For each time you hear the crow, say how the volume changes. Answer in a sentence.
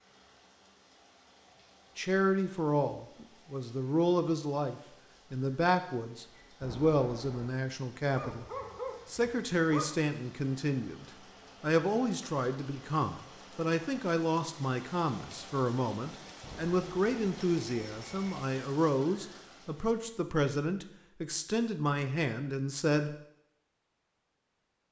You can't hear the crow here.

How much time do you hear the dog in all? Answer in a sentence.
You can hear the dog for 2 seconds altogether.